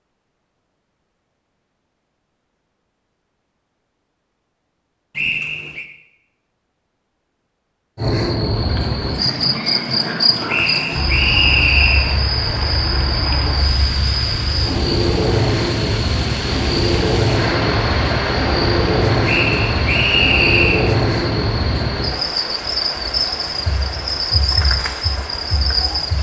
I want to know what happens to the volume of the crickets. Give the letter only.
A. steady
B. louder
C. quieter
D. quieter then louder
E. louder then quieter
A.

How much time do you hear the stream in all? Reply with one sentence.
The stream can be heard for 18 seconds in total.